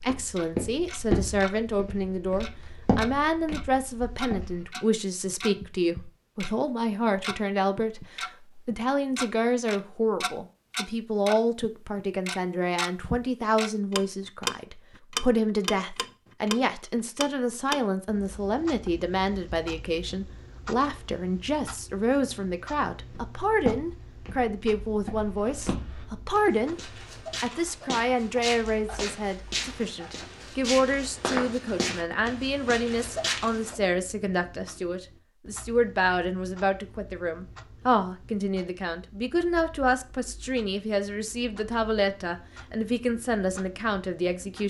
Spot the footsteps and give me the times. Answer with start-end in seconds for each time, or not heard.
0.0-4.7, 23.1-33.8.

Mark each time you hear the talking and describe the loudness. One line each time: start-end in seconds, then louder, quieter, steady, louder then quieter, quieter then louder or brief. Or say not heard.
0.0-44.6 steady.